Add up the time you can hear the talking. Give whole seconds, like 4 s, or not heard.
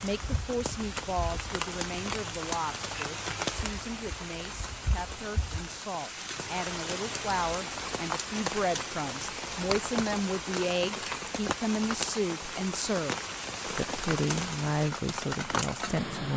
16 s.